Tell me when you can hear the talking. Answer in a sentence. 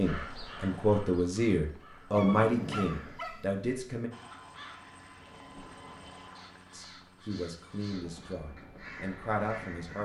You can hear the talking from 0.0 to 4.1 s and from 6.7 to 10.0 s.